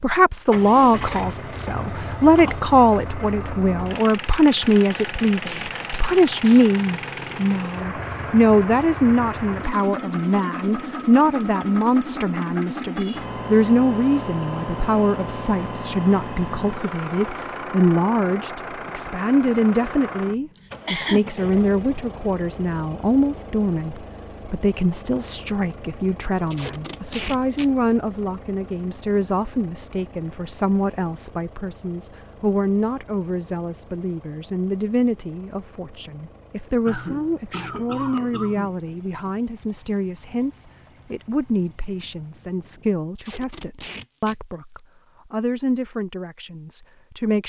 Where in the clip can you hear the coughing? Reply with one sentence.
The coughing can be heard from 1.8 to 2.7 s, from 20.6 to 21.2 s and from 36.9 to 38.7 s.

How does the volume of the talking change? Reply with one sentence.
The loudness of the talking goes down.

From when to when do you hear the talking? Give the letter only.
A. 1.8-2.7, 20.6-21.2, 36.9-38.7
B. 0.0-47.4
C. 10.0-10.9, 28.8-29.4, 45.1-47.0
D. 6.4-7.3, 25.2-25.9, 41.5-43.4
B.